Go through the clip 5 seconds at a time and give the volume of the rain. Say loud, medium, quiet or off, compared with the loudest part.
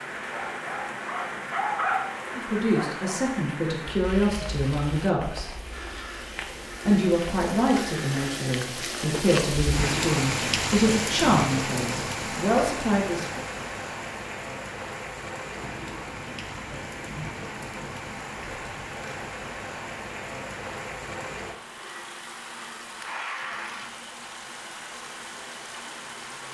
medium, loud, loud, medium, medium, medium.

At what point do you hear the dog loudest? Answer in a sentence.
The loudest moment of the dog is at 2 seconds.